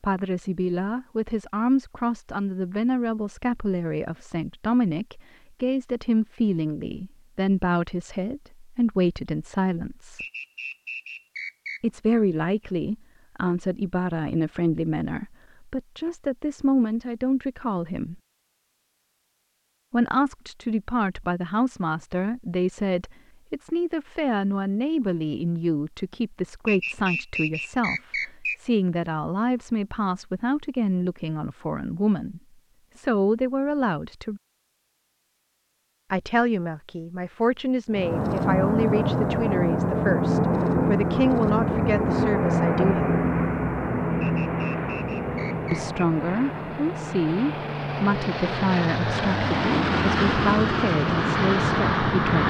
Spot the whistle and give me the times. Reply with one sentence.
You can hear the whistle from 10.2 to 11.8 s, from 26.6 to 28.6 s and from 44.2 to 45.9 s.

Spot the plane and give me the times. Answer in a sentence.
The plane can be heard from 37.9 to 52.4 s.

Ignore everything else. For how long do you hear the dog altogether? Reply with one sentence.
You can't hear the dog here.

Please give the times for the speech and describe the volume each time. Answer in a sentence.
You can hear the speech from 0.0 to 10.2 s, at a steady volume; from 11.8 to 18.2 s, at a steady volume; from 19.9 to 34.4 s, at a steady volume; from 36.1 to 43.1 s, at a steady volume; and from 45.7 to 52.4 s, at a steady volume.